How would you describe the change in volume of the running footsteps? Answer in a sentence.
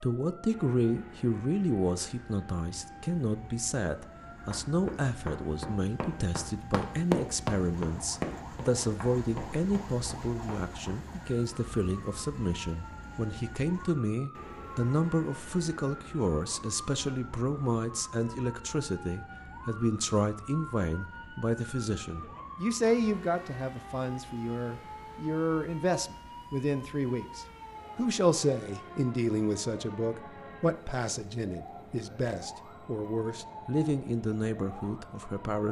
The loudness of the running footsteps goes up, then down.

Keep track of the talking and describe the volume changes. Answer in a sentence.
The volume of the talking stays about the same.